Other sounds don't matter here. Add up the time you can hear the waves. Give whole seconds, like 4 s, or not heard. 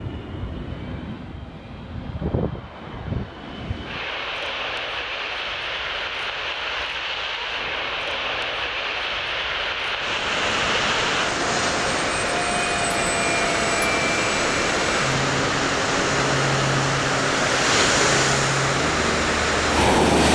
10 s.